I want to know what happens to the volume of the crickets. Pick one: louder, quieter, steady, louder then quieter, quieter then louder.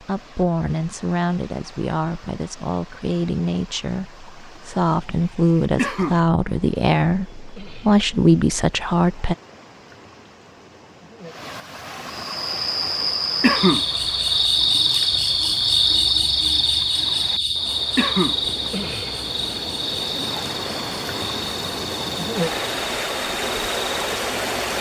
quieter.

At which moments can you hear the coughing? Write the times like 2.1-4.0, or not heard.
5.8-6.2, 13.4-13.8, 17.9-18.4.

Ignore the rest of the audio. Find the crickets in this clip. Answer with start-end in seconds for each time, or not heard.
12.3-24.7.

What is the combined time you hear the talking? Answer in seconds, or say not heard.
9 s.